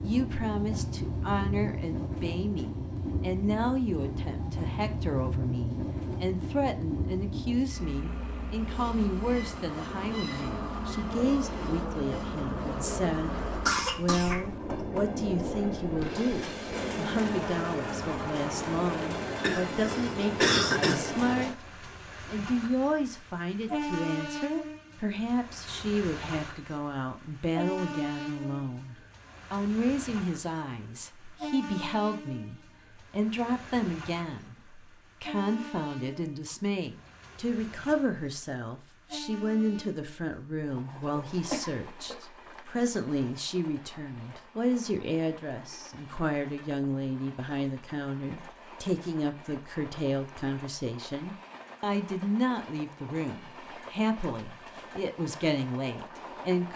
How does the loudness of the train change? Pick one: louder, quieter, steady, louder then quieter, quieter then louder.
quieter.